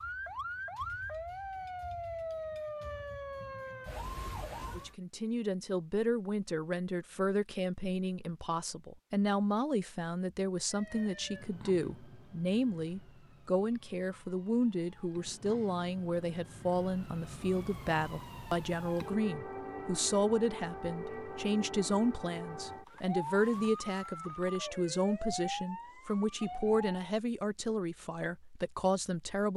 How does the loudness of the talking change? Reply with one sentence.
The loudness of the talking stays about the same.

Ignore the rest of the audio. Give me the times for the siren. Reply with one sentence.
You can hear the siren from 0.0 to 5.0 s and from 10.7 to 27.1 s.